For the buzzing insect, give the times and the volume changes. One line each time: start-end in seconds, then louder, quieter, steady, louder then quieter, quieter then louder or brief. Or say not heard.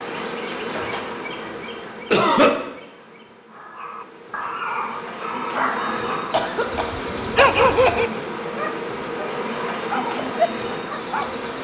0.0-11.5 quieter then louder.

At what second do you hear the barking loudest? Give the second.
8 s.